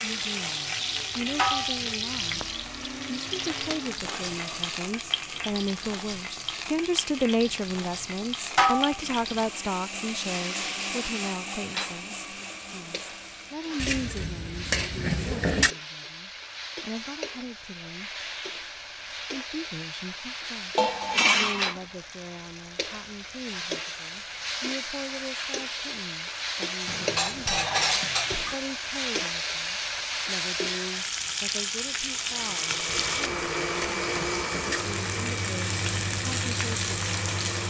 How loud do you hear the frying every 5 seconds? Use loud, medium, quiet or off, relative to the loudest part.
loud, medium, medium, medium, medium, loud, loud, loud.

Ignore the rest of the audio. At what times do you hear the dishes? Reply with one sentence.
The dishes can be heard from 1.4 to 1.8 s, from 8.6 to 9.0 s, from 13.8 to 15.7 s, from 20.8 to 21.8 s, from 26.9 to 28.6 s and from 33.0 to 34.8 s.